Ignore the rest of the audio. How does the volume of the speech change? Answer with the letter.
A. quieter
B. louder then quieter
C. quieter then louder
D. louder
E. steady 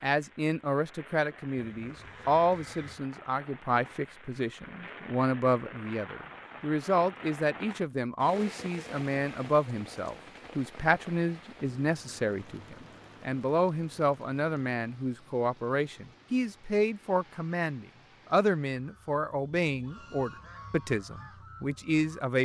E.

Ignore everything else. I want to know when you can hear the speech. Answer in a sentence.
The speech can be heard from 0.0 to 22.4 s.